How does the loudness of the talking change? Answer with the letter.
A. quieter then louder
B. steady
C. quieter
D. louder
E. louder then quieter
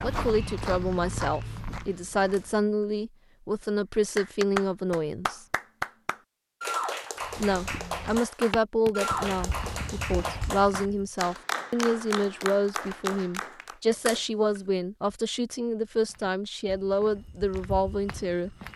B.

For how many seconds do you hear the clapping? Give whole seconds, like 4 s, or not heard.
10 s.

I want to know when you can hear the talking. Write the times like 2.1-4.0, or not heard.
0.0-5.4, 7.4-18.5.